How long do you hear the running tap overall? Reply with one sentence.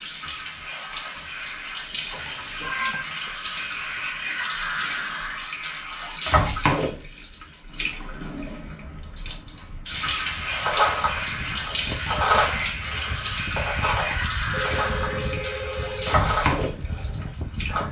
The running tap can be heard for 18 seconds in total.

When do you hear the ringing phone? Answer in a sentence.
The ringing phone can be heard from 2.1 to 3.0 s and from 14.5 to 16.2 s.